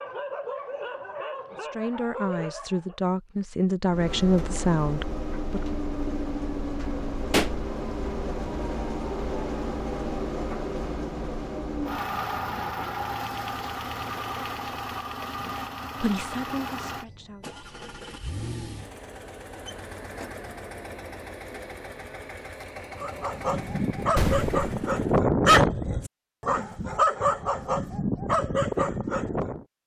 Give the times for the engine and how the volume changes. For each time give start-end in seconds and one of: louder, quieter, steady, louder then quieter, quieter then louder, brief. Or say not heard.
3.9-25.2 quieter.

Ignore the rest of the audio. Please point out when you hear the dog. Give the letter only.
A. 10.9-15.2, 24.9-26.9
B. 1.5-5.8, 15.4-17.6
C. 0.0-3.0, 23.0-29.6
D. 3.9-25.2
C.